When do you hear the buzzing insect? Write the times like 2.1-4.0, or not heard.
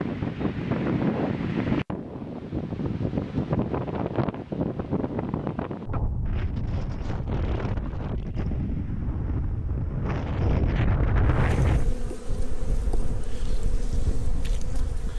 11.2-15.1.